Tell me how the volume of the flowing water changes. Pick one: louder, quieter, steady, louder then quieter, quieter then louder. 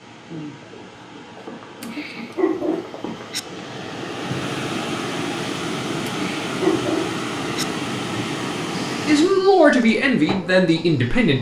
louder.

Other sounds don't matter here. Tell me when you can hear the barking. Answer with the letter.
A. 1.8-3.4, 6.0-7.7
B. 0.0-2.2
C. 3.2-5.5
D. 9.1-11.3
A.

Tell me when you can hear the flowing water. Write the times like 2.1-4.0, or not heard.
0.0-9.4.